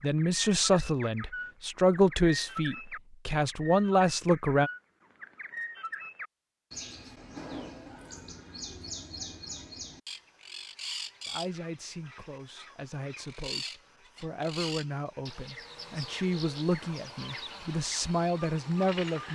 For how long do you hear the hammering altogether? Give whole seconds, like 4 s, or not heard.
not heard.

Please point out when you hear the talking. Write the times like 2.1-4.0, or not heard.
0.0-4.7, 11.2-19.3.